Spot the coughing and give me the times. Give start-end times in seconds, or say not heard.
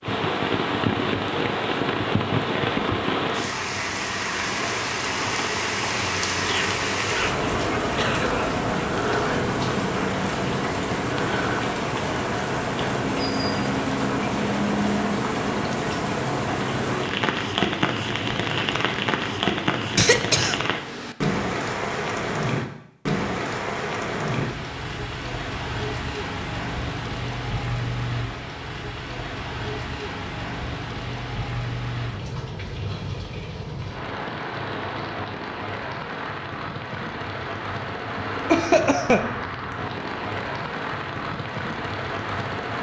6.5-8.5, 19.9-21.1, 38.5-39.3.